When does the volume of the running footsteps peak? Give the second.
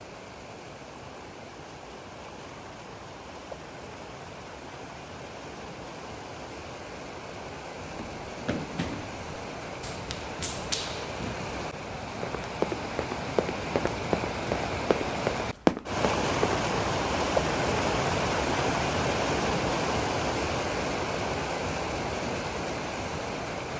16 s.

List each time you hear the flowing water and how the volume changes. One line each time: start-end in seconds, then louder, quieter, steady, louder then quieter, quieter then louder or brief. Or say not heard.
0.0-23.7 louder.